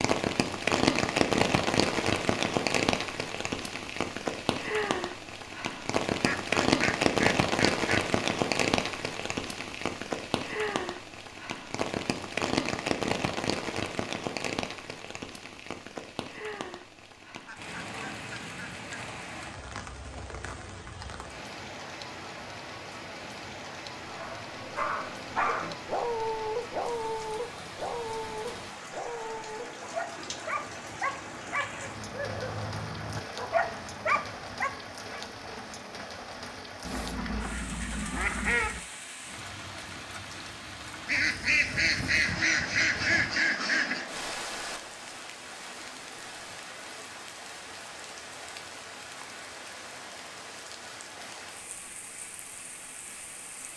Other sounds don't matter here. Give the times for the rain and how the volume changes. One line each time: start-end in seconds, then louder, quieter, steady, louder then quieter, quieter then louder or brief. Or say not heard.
0.0-53.7 quieter.